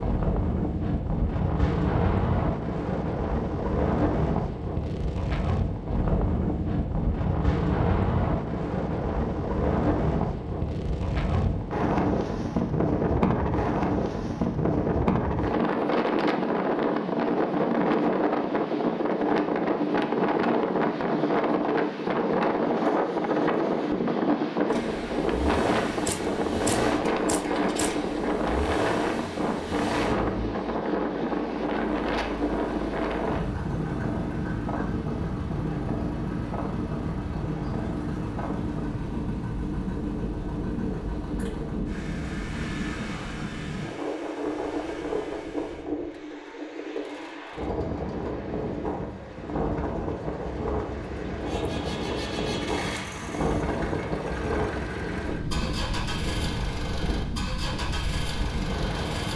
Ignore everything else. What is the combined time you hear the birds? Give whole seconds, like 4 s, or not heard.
not heard.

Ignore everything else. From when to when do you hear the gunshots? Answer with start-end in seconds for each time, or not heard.
26.1-27.9.